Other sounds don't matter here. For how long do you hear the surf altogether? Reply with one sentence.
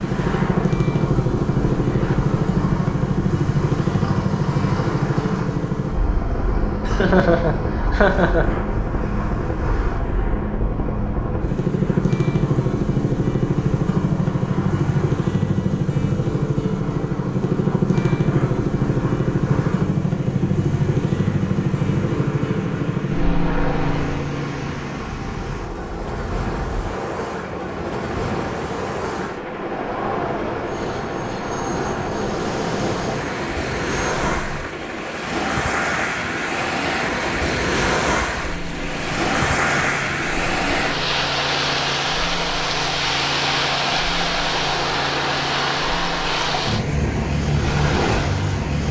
The surf can be heard for 49 seconds in total.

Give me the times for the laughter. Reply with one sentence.
You can hear the laughter from 6.8 to 8.4 s.